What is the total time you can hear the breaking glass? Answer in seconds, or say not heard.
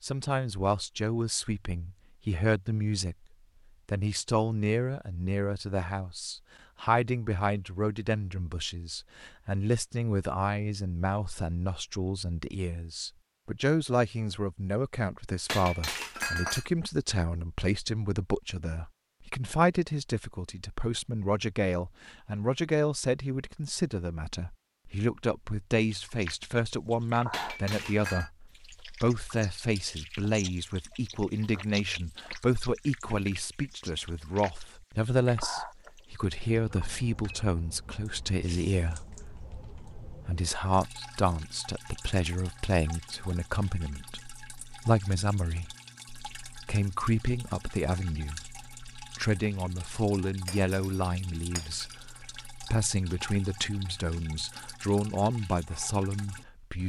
4 s.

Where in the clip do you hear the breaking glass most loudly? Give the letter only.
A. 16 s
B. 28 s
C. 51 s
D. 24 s
A.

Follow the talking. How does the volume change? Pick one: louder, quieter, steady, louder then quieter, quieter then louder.
steady.